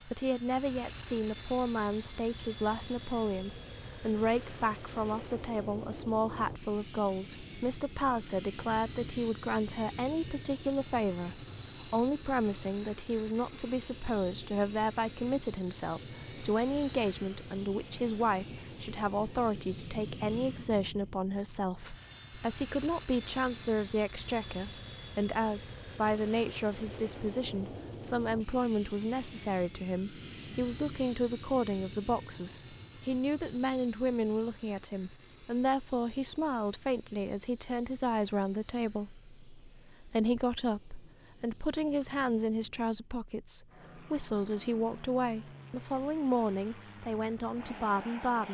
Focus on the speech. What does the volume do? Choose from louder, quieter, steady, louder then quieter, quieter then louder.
steady.